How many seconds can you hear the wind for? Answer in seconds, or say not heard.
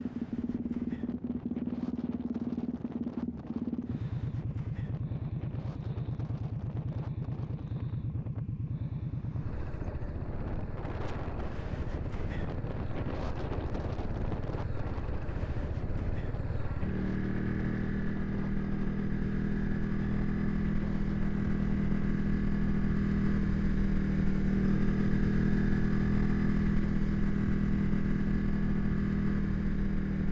22 s.